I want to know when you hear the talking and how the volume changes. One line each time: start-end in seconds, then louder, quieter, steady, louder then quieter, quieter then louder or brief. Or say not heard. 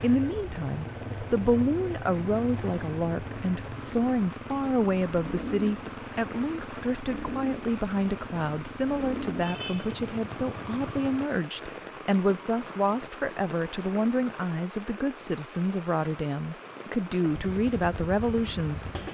0.0-18.9 steady.